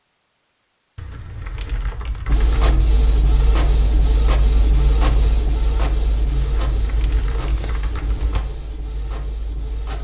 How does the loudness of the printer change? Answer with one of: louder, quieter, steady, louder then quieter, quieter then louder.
quieter.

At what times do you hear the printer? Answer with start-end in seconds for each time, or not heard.
2.2-9.9.